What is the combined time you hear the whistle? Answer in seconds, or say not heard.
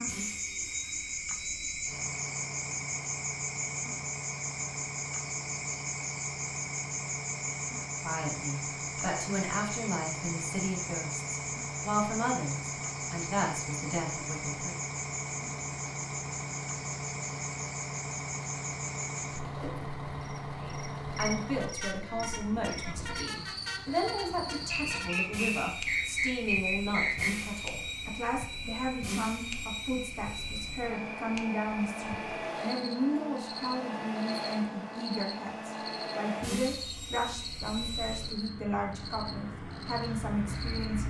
3 s.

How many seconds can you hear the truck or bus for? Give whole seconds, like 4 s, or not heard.
41 s.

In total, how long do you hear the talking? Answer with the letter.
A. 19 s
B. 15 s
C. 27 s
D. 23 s
C.